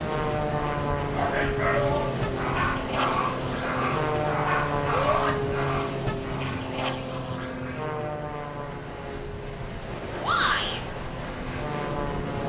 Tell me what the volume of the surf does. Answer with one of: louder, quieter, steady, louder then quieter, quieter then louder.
quieter then louder.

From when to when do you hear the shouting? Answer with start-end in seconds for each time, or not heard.
1.7-2.3, 4.9-5.3, 10.2-10.8.